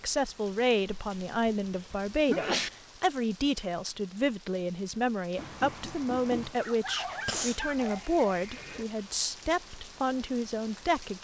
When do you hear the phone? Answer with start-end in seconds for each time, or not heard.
not heard.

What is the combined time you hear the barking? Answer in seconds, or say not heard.
2 s.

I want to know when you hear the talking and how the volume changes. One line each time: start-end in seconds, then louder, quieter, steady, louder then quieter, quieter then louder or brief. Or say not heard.
0.0-11.1 steady.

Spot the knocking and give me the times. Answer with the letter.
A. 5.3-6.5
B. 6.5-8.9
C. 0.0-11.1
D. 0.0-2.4
A.